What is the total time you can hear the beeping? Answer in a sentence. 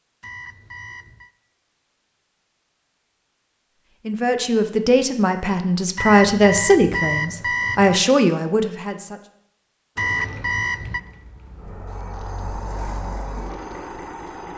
You can hear the beeping for 4 seconds altogether.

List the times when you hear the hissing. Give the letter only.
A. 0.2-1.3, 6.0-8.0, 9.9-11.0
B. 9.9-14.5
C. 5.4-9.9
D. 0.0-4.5
B.